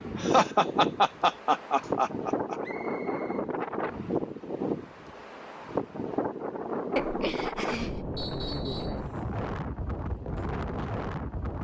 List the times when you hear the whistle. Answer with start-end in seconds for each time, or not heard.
2.6-3.5, 8.2-9.0.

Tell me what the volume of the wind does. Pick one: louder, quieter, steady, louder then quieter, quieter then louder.
steady.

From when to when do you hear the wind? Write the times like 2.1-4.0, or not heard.
0.0-11.5.